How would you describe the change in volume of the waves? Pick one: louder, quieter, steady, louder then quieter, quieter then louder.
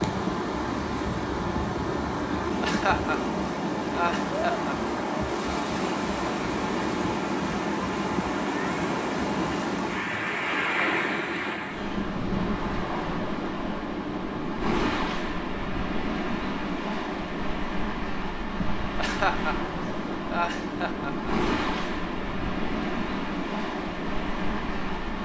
steady.